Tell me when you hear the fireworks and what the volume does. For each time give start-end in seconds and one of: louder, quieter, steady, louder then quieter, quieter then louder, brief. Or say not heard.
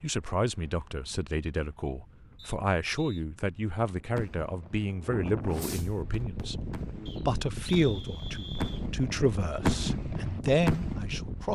4.1-4.9 brief
5.5-11.2 louder.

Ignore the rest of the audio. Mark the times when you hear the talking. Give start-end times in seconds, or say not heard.
0.0-11.5.